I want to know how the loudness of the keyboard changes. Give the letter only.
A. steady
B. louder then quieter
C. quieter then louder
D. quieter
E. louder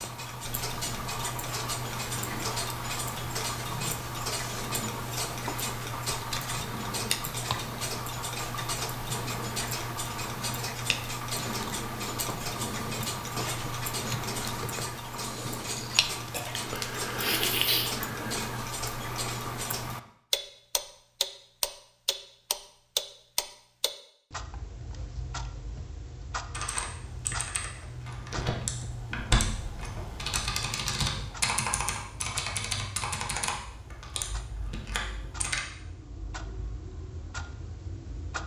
B.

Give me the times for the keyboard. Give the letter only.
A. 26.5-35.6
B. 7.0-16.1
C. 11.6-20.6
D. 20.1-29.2
A.